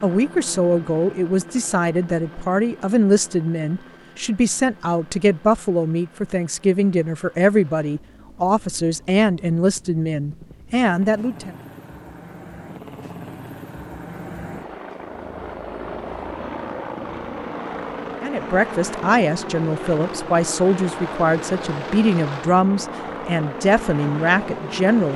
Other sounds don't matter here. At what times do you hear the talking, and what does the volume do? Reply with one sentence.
The talking can be heard from 0.0 to 11.6 s, at a steady volume; and from 18.2 to 25.1 s, at a steady volume.